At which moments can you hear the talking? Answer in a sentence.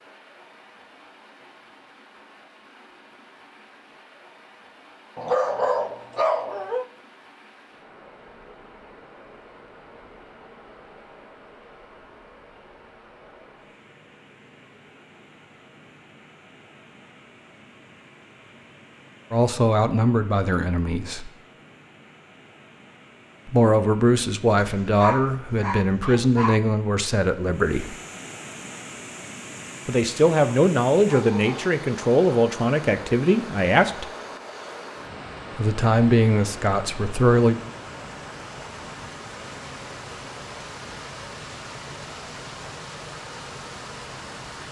You can hear the talking from 19.3 to 21.3 s, from 23.4 to 27.9 s, from 29.9 to 34.1 s and from 35.5 to 37.6 s.